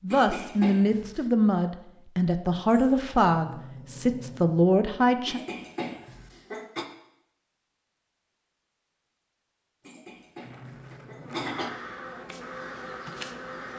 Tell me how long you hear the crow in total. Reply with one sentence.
You can hear the crow for 2 seconds altogether.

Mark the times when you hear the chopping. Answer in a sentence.
You can't hear the chopping here.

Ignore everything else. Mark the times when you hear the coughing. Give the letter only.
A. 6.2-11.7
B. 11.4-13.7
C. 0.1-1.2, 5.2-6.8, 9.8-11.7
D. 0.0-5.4
C.